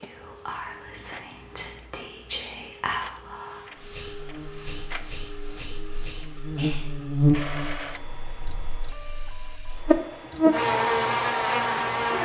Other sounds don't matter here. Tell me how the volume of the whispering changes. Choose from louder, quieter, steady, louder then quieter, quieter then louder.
quieter.